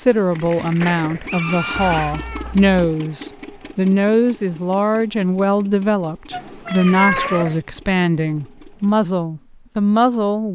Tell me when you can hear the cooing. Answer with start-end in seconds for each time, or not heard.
not heard.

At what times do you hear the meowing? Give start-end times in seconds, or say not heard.
1.7-2.8, 6.3-7.6.